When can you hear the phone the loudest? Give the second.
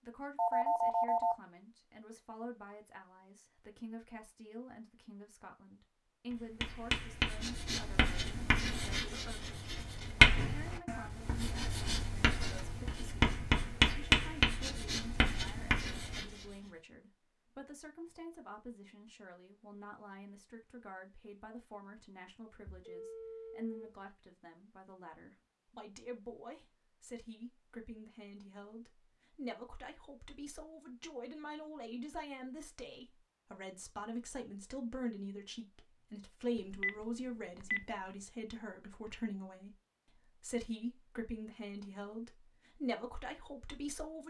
1 s.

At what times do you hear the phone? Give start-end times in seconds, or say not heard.
0.3-1.4, 22.6-24.1, 36.5-37.9.